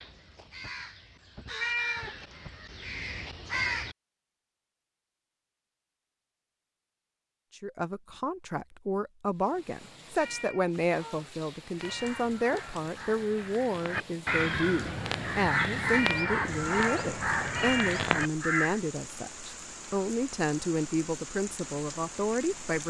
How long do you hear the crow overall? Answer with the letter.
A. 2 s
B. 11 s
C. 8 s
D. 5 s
B.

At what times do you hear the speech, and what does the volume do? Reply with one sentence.
You can hear the speech from 7.5 to 22.8 s, at a steady volume.